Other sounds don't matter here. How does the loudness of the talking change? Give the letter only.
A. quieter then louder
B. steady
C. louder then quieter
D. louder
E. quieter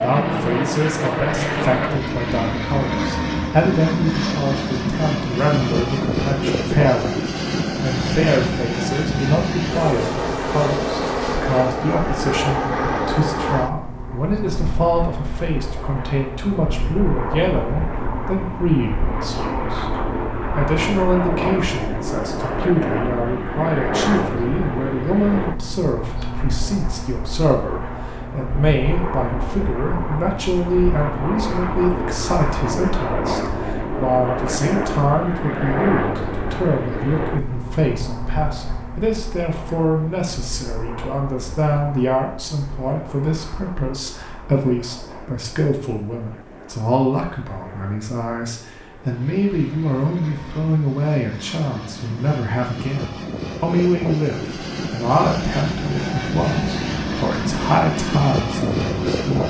B.